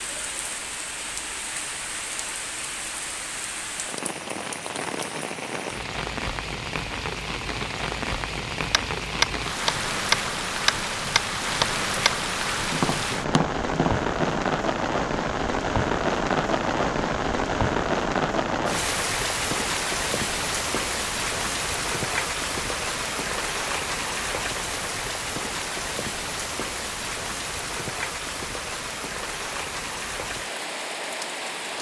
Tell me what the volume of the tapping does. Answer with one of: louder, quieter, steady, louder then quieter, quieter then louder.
quieter.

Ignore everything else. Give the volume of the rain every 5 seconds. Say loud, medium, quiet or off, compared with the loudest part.
medium, medium, loud, loud, loud, medium, medium.